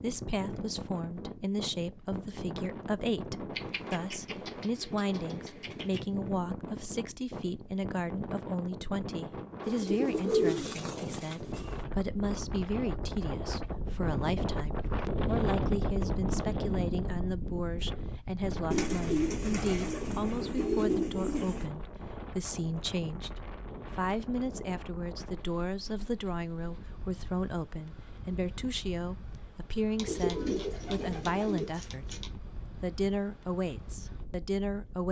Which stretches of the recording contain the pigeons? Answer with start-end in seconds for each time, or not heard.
3.5-6.0, 9.6-11.8, 18.7-21.6, 29.9-32.3.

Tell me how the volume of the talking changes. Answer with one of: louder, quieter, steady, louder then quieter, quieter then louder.
steady.